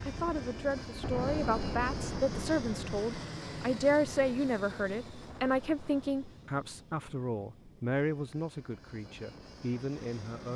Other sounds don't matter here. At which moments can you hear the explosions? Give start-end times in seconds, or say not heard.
1.0-2.8.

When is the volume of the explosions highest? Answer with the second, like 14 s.
1 s.